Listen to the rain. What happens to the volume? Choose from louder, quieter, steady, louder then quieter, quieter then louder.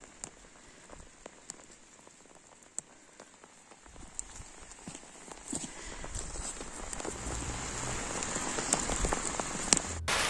louder.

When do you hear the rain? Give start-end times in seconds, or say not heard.
0.0-10.2.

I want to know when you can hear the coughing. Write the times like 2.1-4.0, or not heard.
7.0-8.2.